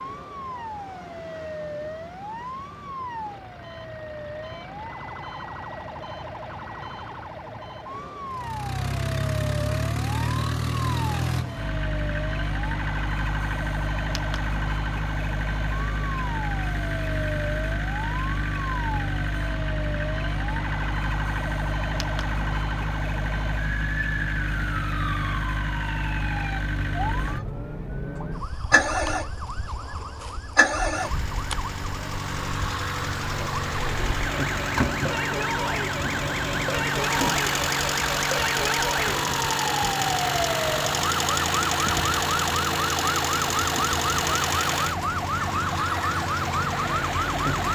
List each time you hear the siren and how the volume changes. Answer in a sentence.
The siren can be heard from 0.0 to 47.7 s, getting louder.